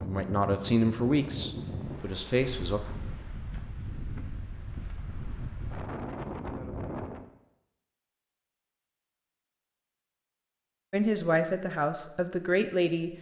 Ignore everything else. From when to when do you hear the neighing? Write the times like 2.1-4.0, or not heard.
not heard.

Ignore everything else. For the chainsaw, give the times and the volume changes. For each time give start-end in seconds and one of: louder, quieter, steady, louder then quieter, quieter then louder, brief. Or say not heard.
not heard.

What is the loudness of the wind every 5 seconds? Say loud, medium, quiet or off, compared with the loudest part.
loud, loud, off.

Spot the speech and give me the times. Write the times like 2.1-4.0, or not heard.
0.0-2.8, 10.9-13.1.